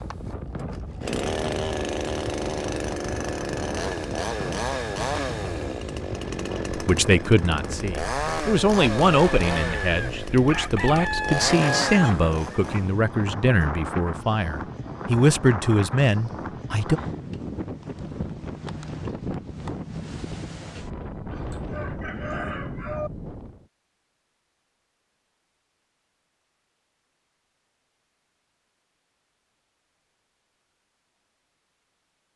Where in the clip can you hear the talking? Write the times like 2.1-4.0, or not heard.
6.7-17.0.